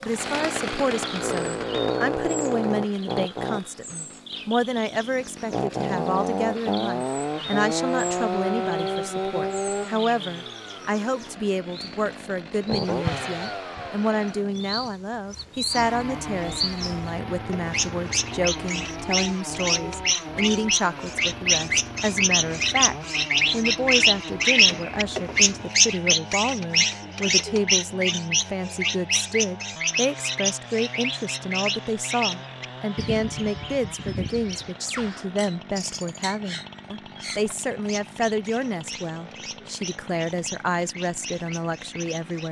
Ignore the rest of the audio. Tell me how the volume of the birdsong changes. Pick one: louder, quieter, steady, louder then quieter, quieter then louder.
louder then quieter.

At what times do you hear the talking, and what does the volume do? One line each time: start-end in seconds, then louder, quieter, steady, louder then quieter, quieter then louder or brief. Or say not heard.
0.0-42.4 steady.